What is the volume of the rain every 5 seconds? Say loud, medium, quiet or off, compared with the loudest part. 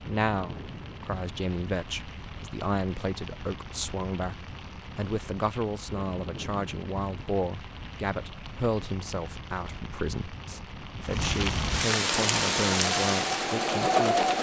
quiet, quiet, loud.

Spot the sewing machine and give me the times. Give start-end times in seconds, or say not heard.
12.1-14.3.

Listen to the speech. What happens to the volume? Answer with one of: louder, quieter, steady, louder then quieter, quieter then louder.
steady.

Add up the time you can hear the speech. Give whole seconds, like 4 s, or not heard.
14 s.